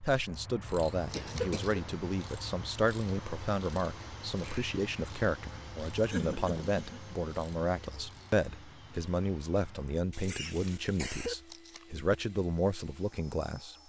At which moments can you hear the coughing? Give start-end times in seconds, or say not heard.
1.1-1.8, 6.0-7.2, 10.1-11.3.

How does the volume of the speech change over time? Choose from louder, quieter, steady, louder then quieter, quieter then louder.
steady.